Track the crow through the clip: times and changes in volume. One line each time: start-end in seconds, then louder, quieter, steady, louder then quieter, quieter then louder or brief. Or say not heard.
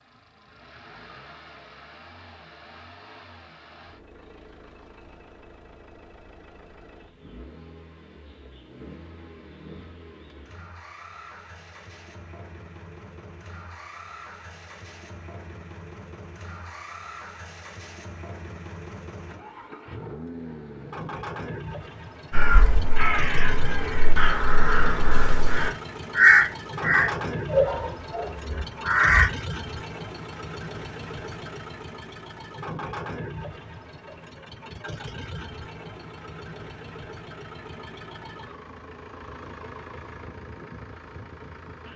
22.3-29.3 louder then quieter.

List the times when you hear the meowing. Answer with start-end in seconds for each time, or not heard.
not heard.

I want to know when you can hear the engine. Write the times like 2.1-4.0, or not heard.
0.0-41.9.